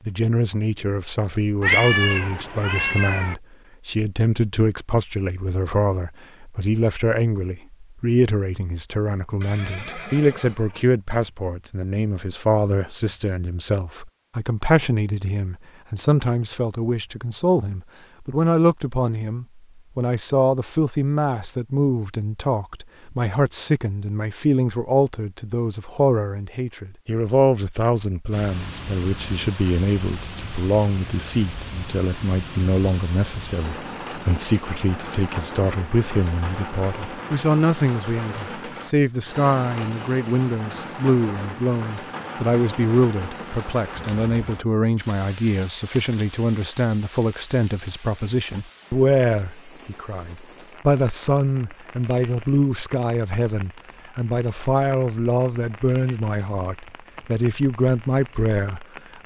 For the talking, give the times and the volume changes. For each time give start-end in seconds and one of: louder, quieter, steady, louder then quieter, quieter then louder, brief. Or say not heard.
0.1-59.2 steady.